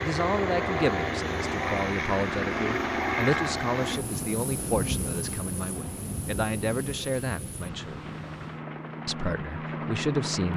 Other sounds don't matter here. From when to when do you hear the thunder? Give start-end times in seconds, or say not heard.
4.0-8.7.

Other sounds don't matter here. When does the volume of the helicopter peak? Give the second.
3 s.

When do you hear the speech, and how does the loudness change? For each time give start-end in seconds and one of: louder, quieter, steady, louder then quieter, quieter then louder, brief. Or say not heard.
0.0-8.0 steady
9.1-10.5 brief.